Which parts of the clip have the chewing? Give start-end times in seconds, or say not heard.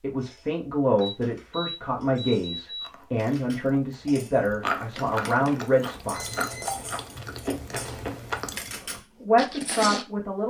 2.8-10.1.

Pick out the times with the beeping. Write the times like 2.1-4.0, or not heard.
1.0-3.0, 6.1-6.8.